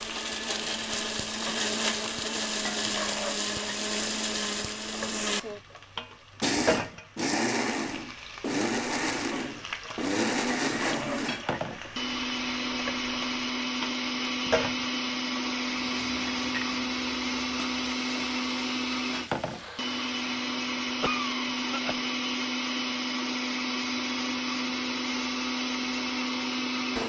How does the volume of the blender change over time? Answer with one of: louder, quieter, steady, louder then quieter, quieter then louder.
steady.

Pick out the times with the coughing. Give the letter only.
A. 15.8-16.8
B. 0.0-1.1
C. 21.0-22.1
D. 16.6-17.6
C.